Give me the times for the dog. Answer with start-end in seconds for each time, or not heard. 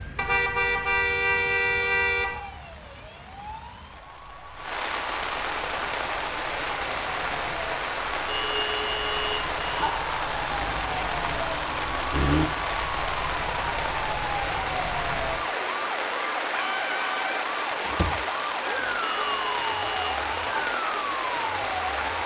not heard.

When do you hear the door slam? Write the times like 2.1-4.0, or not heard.
17.8-18.2.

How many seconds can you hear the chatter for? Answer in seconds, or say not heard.
not heard.